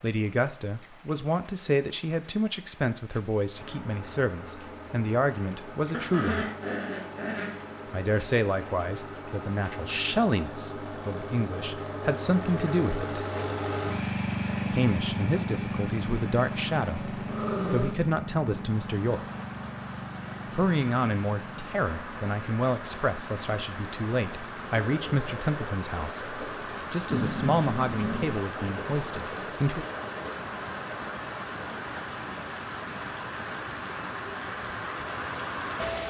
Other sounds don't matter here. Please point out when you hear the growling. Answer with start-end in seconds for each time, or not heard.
5.9-7.8, 17.2-17.9, 27.1-28.4.